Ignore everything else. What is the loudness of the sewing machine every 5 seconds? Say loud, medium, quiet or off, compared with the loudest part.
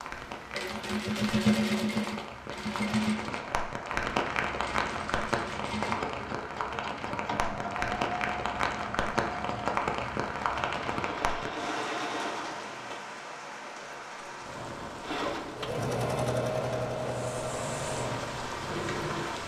loud, medium, medium, loud.